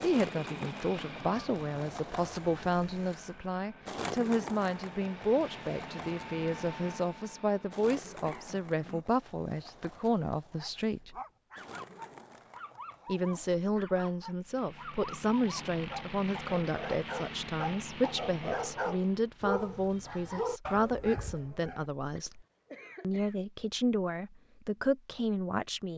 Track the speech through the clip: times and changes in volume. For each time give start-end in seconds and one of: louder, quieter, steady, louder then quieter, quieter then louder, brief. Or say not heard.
0.0-11.2 steady
13.1-22.4 steady
23.0-25.9 brief.